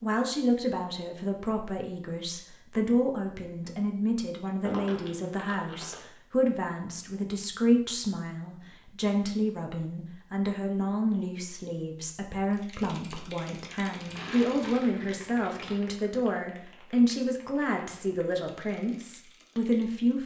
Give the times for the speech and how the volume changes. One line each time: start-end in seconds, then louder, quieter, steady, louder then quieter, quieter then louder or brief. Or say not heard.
0.0-20.2 steady.